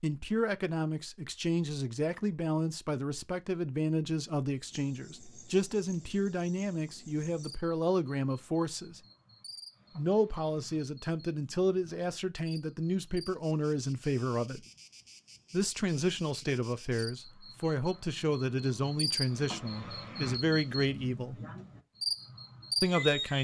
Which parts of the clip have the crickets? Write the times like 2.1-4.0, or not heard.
4.7-23.3.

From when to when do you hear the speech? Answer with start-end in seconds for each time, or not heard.
0.0-9.0, 9.9-14.6, 15.5-21.4, 22.8-23.3.